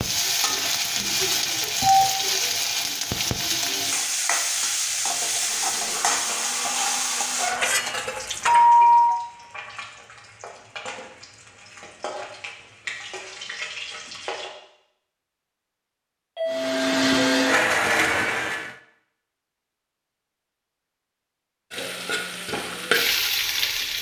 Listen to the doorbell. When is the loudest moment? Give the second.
9 s.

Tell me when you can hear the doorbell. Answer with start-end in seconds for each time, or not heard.
1.0-2.1, 8.4-9.2, 16.4-17.6.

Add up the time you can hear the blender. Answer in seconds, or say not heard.
5 s.